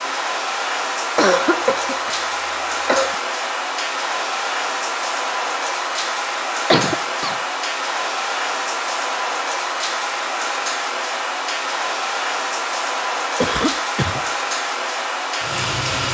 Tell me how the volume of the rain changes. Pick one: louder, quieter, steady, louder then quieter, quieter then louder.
steady.